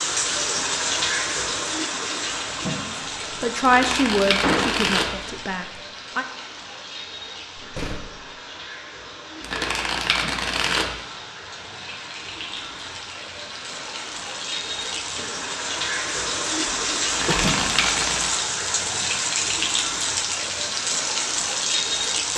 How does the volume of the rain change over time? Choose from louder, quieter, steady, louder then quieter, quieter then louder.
quieter then louder.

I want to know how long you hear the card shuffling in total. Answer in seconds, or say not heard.
4 s.